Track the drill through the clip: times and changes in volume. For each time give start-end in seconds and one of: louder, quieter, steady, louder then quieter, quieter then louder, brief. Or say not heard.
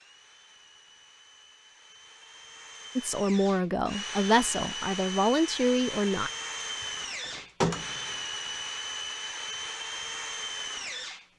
0.0-11.3 louder.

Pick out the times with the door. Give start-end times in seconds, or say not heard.
6.6-8.2.